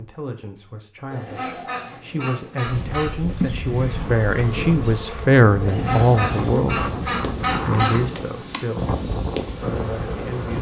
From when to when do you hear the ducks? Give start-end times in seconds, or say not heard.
1.1-3.4, 5.6-8.0.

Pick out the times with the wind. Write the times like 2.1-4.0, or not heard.
2.6-10.5.